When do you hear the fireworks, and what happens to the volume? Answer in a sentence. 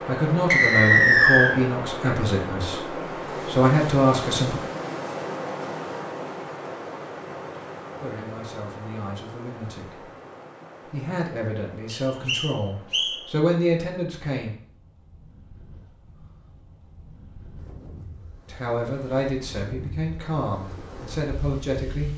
The fireworks can't be heard in this clip.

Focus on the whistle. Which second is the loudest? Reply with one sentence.
The loudest moment of the whistle is at 1 second.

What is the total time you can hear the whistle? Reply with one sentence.
The whistle can be heard for 2 seconds in total.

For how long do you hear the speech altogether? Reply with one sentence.
The speech can be heard for 14 seconds in total.